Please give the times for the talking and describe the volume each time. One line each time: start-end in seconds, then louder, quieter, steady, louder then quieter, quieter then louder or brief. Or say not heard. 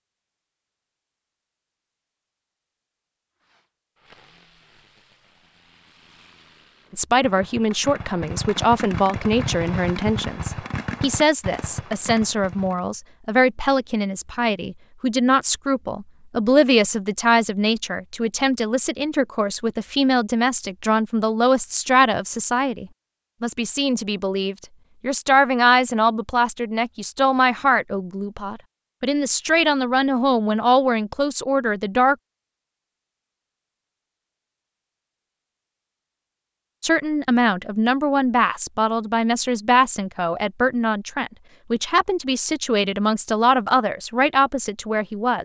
6.9-32.1 steady
36.8-45.4 steady.